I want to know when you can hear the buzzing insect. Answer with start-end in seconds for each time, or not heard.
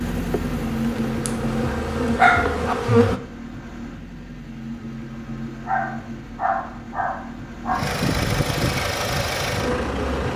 0.0-3.2, 8.8-10.3.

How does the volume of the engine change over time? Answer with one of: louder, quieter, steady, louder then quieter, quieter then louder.
quieter then louder.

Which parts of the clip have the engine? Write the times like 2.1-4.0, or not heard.
0.0-10.3.